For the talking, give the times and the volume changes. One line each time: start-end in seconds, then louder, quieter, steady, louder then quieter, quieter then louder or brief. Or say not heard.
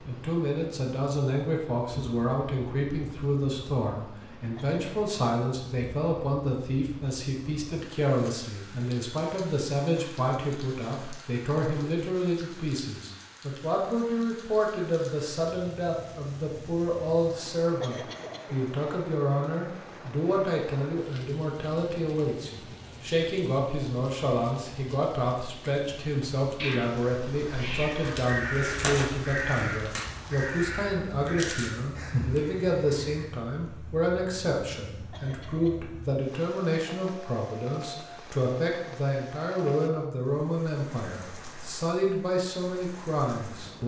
0.0-43.8 steady.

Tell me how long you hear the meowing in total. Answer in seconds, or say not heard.
2 s.